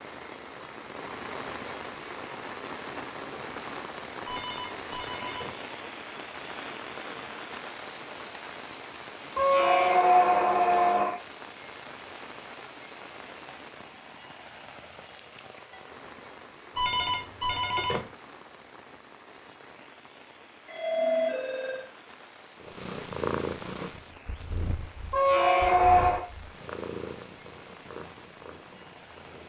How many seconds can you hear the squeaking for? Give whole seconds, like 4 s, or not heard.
3 s.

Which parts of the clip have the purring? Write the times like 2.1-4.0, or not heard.
22.6-29.4.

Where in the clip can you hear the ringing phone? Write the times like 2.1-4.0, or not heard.
4.2-5.6, 16.8-18.1, 20.6-21.9.